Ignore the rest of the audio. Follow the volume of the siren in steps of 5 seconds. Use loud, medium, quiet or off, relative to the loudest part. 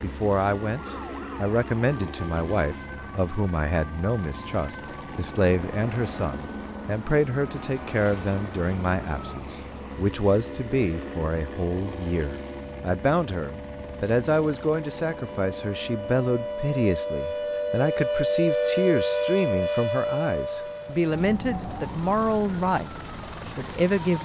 quiet, quiet, quiet, loud, medium.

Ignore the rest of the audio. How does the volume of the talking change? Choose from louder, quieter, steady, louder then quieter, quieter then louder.
steady.